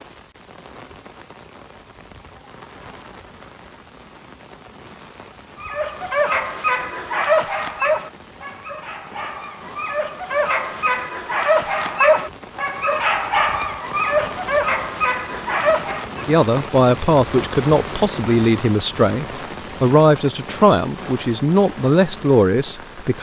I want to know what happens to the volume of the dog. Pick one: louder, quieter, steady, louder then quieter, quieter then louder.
quieter then louder.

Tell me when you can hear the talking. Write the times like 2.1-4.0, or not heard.
16.2-23.1.